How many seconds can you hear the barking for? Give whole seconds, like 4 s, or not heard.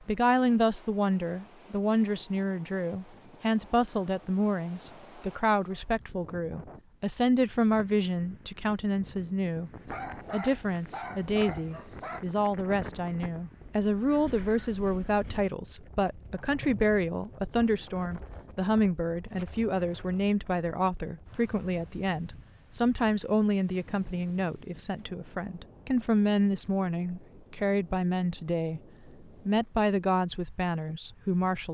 2 s.